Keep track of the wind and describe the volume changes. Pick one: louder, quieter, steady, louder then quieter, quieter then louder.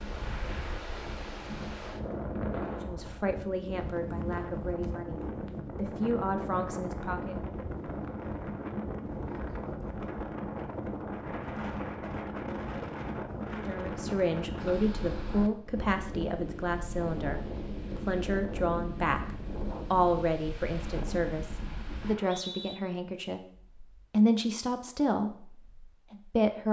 steady.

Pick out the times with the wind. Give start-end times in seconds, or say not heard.
0.0-22.1.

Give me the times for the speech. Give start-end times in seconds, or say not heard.
2.7-7.3, 13.6-26.6.